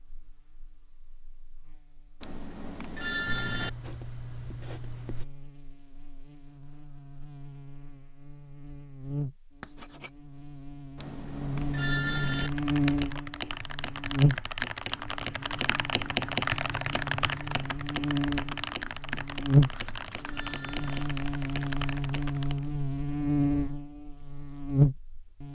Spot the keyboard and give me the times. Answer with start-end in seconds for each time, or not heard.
12.2-22.6.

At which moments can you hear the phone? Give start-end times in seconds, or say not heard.
2.2-3.7, 10.9-12.5, 19.7-21.1.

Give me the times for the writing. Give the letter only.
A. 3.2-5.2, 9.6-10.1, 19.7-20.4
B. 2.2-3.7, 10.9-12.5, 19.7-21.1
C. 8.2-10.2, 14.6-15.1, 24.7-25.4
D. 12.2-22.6
A.